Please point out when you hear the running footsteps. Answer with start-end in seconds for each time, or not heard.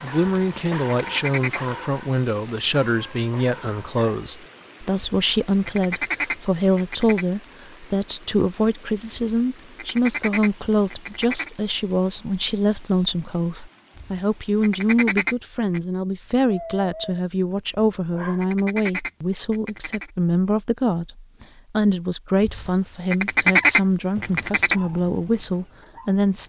not heard.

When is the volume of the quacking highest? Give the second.
24 s.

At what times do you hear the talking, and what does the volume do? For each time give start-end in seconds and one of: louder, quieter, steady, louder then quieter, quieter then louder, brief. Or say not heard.
0.0-26.4 steady.